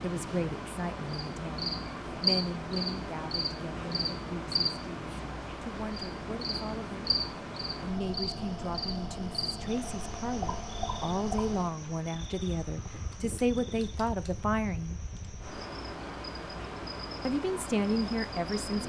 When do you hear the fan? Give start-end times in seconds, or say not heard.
0.0-18.8.